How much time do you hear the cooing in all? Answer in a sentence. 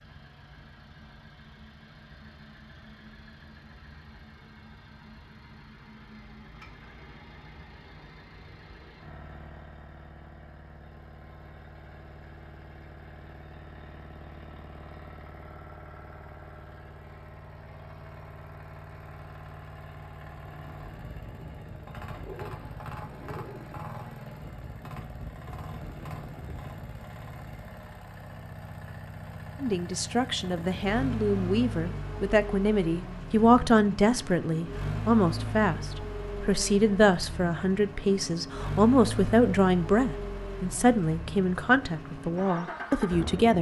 You can hear the cooing for 2 seconds altogether.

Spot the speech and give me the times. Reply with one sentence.
You can hear the speech from 29.6 to 43.5 s.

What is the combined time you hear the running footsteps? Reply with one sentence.
The running footsteps can't be heard in this clip.